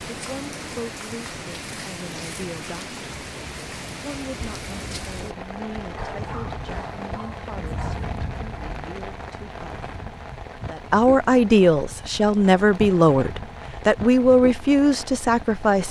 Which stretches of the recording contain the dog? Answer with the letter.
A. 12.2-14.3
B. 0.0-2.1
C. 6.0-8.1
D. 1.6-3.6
C.